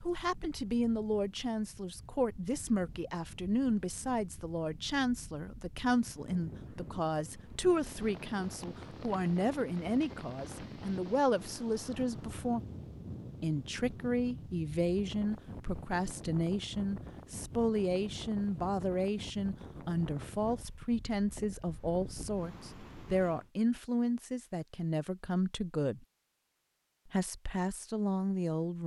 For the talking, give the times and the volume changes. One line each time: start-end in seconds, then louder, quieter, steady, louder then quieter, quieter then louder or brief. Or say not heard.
0.0-12.6 steady
13.4-26.1 steady
27.1-28.8 brief.